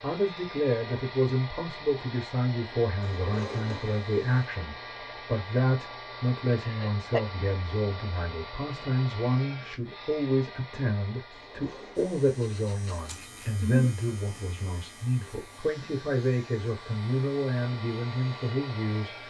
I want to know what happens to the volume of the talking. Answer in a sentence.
The volume of the talking stays about the same.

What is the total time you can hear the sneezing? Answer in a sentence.
You can hear the sneezing for 2 seconds altogether.